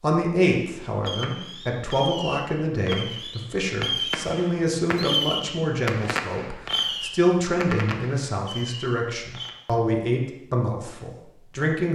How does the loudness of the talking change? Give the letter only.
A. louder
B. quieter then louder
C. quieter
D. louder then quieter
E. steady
E.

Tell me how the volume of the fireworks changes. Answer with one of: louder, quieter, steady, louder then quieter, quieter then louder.
louder then quieter.